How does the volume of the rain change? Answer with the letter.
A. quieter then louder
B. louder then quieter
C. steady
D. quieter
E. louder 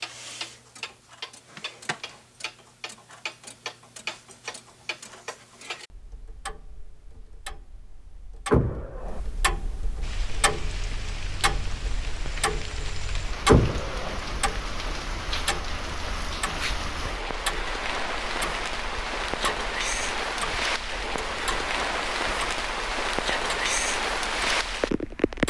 E.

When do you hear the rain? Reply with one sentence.
The rain can be heard from 10.0 to 25.4 s.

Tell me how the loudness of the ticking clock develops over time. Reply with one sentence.
The volume of the ticking clock goes up, then down.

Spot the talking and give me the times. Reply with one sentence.
You can't hear the talking here.